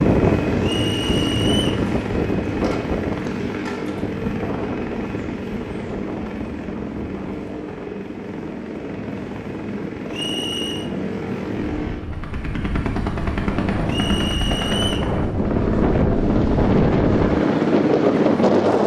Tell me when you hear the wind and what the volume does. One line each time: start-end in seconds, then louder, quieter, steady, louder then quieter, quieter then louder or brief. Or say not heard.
0.0-18.8 quieter then louder.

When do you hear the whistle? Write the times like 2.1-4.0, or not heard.
0.6-1.9, 10.1-10.9, 13.8-15.1.